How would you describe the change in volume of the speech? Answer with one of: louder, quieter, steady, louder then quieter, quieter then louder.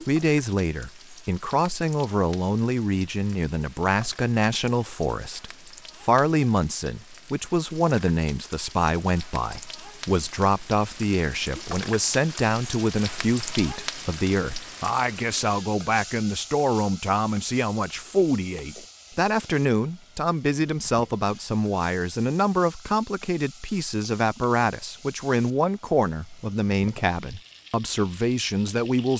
steady.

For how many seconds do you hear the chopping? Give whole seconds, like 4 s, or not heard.
not heard.